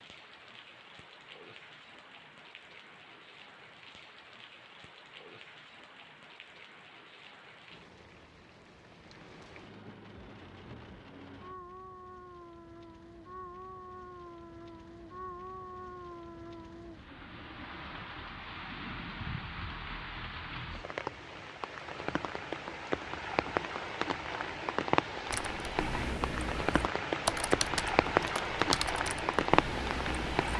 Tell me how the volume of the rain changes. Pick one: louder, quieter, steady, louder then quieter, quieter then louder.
louder.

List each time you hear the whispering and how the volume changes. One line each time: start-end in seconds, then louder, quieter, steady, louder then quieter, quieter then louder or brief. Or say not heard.
not heard.